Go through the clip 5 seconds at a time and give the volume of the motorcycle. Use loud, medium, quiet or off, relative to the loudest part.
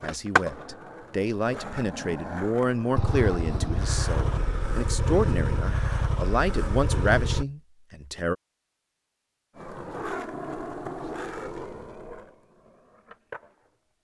loud, loud, off.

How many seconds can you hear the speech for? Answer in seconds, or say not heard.
8 s.